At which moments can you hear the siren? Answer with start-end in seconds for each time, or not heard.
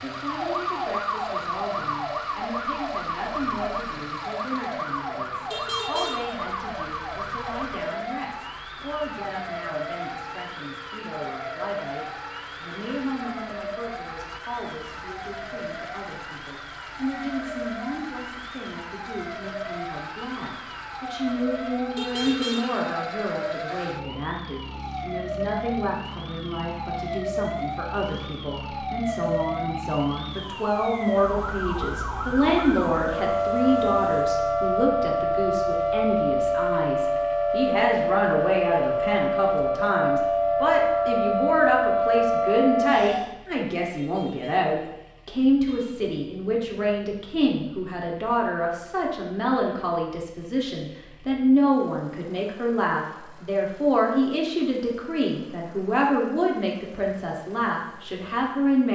0.0-43.4.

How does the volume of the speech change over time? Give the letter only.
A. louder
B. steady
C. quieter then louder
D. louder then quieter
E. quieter
A.